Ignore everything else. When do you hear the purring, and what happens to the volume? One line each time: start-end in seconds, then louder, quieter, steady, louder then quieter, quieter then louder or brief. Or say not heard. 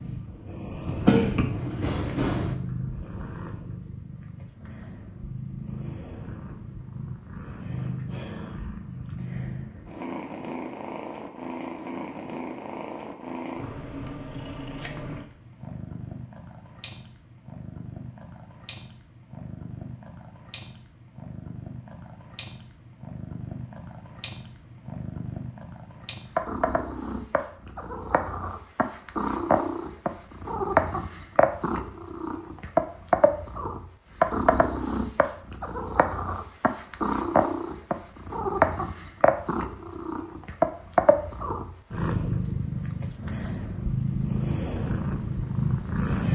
0.0-46.3 louder.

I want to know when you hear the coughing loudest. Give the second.
1 s.